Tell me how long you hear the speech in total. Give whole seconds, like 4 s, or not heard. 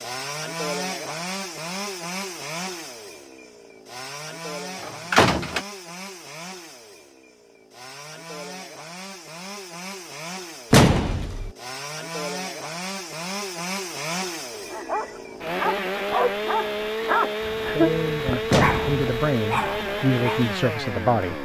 4 s.